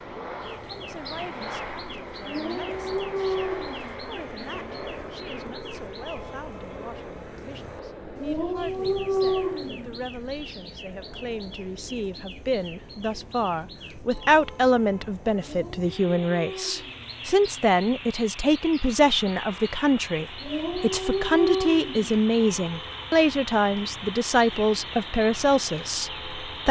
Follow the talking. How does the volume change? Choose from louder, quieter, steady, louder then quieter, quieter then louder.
louder.